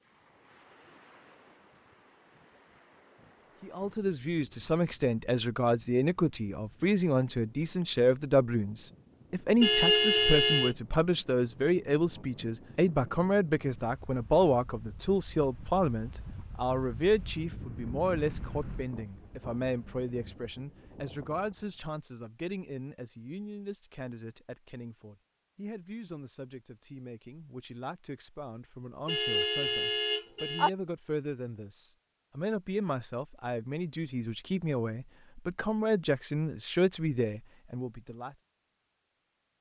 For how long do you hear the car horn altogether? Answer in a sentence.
You can hear the car horn for 3 seconds altogether.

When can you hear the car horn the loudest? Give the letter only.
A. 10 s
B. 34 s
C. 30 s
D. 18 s
A.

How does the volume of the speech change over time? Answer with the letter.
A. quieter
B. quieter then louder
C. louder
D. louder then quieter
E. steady
B.